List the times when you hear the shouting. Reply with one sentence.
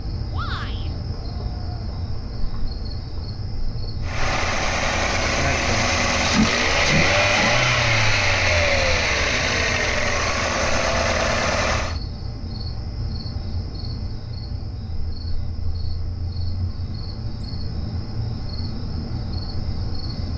You can hear the shouting from 0.3 to 0.9 s.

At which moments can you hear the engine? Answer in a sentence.
You can hear the engine from 4.0 to 12.0 s.